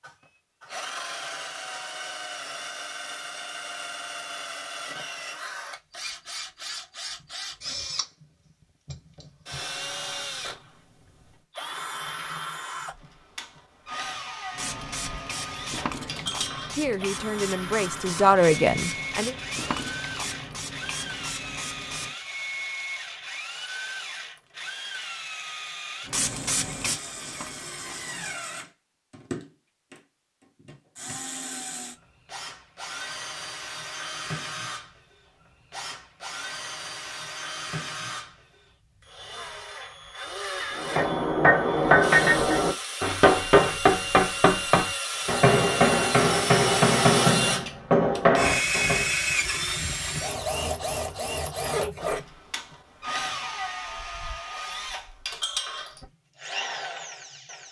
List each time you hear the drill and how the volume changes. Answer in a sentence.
The drill can be heard from 0.0 to 57.6 s, getting louder.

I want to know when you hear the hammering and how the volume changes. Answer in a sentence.
You can hear the hammering from 40.8 to 49.1 s, at a steady volume.